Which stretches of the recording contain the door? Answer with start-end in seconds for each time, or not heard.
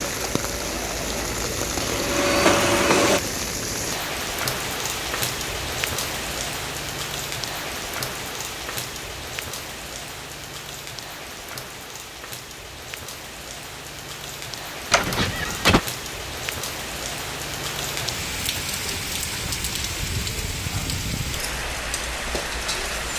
14.9-15.8.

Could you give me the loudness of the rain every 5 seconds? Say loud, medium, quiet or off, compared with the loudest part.
loud, loud, medium, loud, loud.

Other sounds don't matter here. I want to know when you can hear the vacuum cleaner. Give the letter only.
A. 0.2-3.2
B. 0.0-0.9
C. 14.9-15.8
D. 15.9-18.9
A.